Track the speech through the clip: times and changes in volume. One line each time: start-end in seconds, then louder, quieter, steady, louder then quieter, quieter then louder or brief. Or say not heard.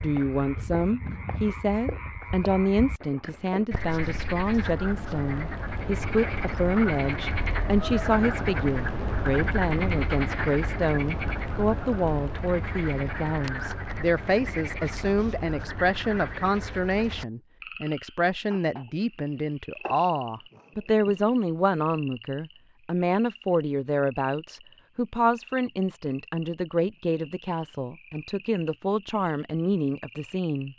0.0-30.7 steady.